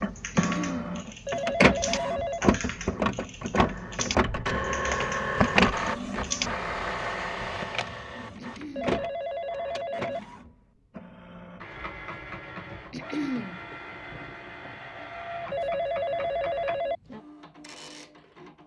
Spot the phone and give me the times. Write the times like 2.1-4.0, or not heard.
1.2-2.5, 8.8-10.2, 15.5-16.9.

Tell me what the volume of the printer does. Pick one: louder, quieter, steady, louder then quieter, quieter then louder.
quieter.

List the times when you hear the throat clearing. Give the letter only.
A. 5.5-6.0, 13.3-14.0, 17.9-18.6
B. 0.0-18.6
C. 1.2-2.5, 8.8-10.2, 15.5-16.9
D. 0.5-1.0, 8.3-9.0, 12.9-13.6
D.